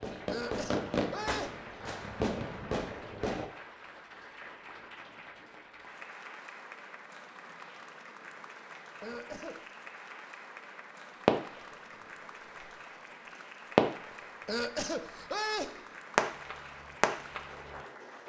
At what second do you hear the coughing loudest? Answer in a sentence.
The loudest moment of the coughing is at 15 seconds.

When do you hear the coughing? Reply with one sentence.
The coughing can be heard from 0.2 to 1.7 s, from 9.0 to 9.6 s and from 14.4 to 15.8 s.